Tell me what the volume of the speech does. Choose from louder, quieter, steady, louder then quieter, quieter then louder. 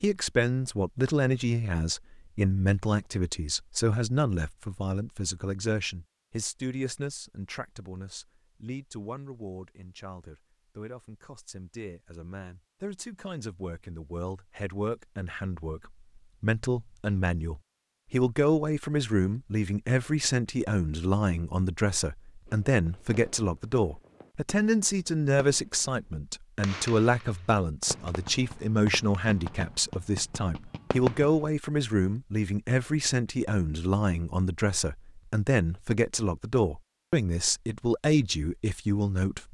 quieter then louder.